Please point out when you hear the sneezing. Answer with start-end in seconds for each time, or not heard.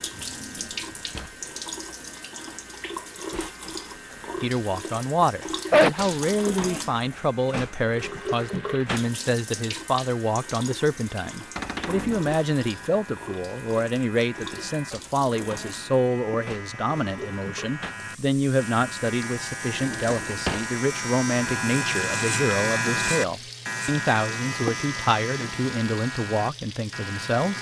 5.7-6.2.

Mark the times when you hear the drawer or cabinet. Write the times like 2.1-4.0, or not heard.
0.1-1.4, 11.6-12.3, 19.7-20.8.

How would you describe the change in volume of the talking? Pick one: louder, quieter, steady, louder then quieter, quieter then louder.
steady.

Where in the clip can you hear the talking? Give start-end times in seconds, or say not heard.
4.4-27.5.